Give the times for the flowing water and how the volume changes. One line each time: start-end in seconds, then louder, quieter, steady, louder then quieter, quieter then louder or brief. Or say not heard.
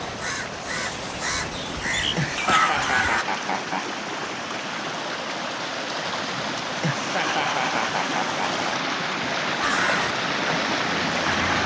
0.0-11.6 louder.